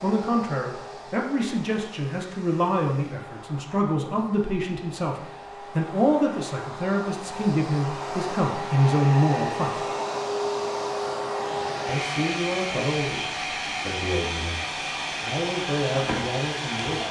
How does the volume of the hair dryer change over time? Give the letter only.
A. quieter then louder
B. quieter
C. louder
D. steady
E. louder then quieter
C.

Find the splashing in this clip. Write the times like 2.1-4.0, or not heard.
not heard.